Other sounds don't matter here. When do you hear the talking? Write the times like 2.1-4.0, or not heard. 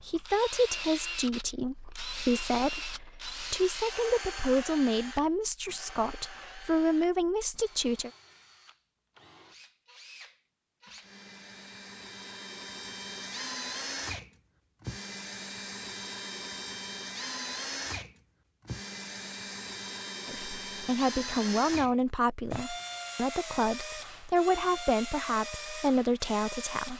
0.0-8.1, 20.2-26.9.